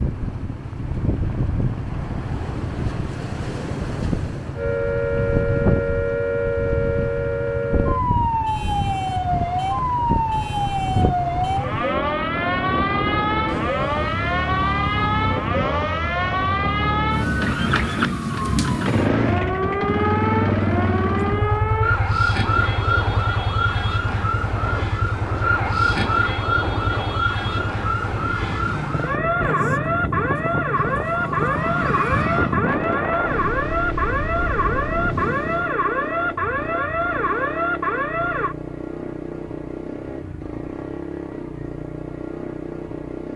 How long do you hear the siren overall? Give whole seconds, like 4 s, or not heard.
34 s.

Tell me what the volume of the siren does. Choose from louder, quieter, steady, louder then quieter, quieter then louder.
steady.